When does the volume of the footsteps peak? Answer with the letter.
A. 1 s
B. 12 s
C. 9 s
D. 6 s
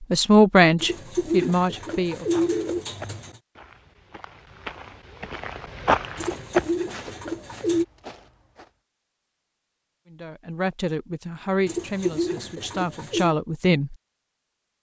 D.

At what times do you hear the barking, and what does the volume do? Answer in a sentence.
You can't hear the barking here.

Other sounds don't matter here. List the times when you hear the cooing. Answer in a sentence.
The cooing can be heard from 0.8 to 3.4 s, from 6.2 to 7.8 s and from 11.7 to 13.3 s.